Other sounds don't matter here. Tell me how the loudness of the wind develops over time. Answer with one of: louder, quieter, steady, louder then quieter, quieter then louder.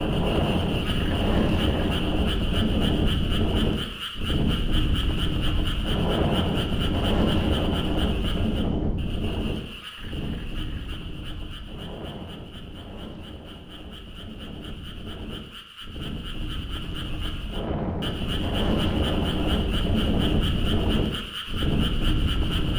quieter then louder.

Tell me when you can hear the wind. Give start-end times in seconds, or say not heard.
0.0-22.7.